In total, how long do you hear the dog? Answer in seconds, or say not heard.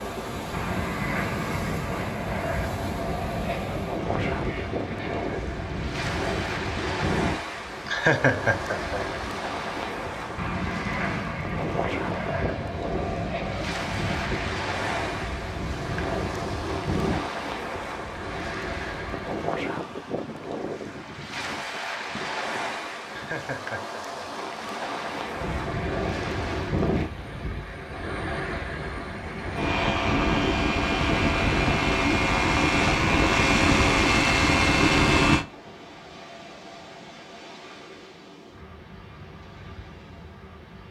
not heard.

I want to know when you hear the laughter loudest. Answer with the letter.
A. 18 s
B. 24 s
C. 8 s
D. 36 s
C.